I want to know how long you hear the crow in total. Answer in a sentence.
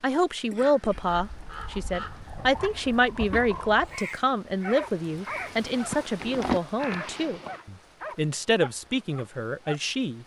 The crow can be heard for 7 seconds in total.